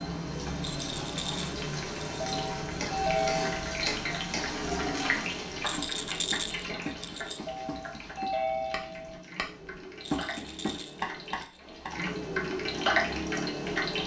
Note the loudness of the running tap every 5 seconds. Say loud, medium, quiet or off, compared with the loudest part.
loud, medium, loud.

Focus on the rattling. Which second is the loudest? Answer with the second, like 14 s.
6 s.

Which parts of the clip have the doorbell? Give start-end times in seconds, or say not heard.
2.2-3.7, 7.5-9.2.